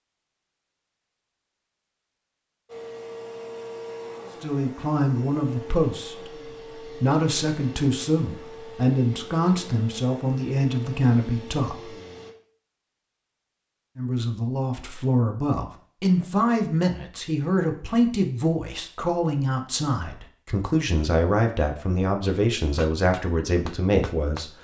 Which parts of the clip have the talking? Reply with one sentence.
You can hear the talking from 4.4 to 11.9 s and from 13.9 to 24.5 s.